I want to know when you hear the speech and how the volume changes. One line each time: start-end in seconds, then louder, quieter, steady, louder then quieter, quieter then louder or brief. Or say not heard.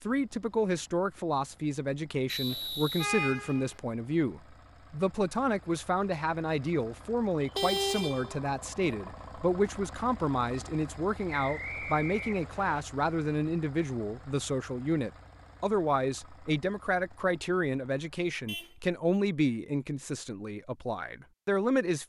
0.0-22.0 steady.